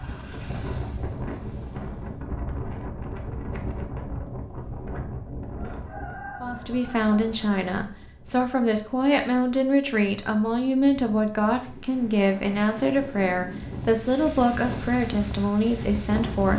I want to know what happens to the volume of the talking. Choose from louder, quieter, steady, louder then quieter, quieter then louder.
steady.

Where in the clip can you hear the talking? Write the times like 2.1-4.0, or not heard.
6.4-16.5.